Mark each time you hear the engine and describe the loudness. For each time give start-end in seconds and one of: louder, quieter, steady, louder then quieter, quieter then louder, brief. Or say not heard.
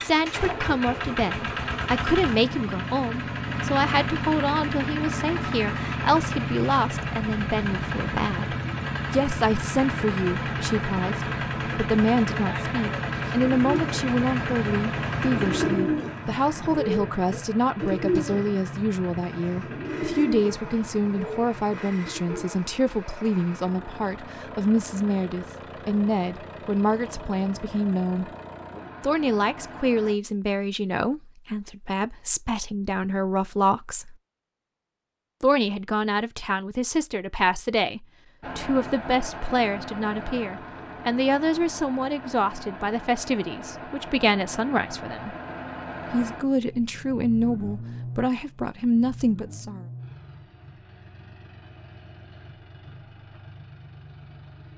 0.0-30.1 quieter
38.4-54.7 quieter.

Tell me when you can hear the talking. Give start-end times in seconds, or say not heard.
0.0-28.3, 29.0-34.1, 35.4-45.4, 46.1-49.9.